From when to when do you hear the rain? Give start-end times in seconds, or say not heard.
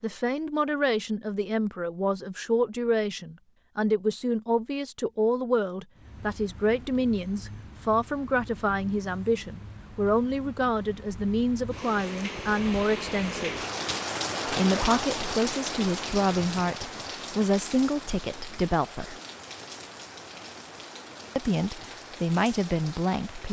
6.0-23.4.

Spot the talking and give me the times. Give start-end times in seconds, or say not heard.
0.0-13.6, 14.4-19.1, 21.4-23.4.